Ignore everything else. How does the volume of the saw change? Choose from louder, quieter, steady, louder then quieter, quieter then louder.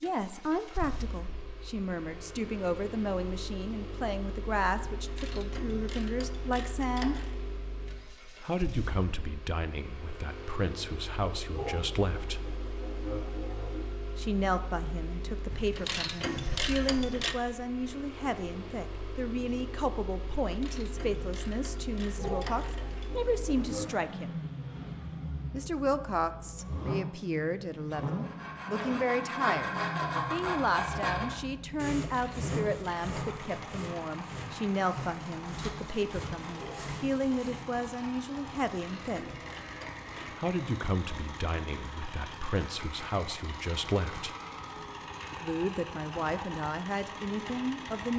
quieter.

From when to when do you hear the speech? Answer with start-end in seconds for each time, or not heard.
0.0-7.2, 8.4-12.4, 14.2-24.3, 25.5-39.3, 40.4-44.4, 45.3-48.1.